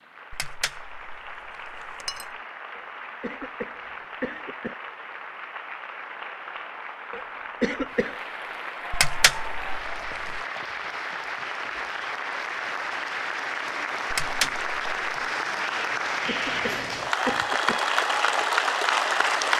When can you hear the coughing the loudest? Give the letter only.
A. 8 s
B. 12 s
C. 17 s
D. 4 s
A.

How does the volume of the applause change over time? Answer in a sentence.
The volume of the applause goes up.